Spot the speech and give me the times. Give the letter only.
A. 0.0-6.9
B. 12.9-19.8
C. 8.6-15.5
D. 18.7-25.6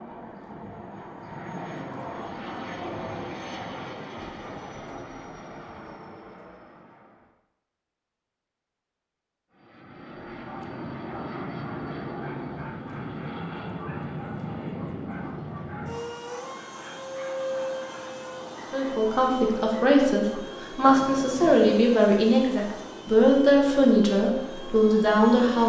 D.